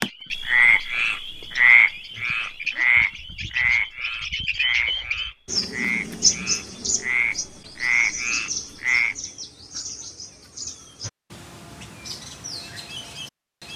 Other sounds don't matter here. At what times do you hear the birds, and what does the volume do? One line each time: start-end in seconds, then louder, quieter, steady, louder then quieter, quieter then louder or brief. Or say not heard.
0.0-13.7 louder then quieter.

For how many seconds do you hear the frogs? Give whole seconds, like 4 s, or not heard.
9 s.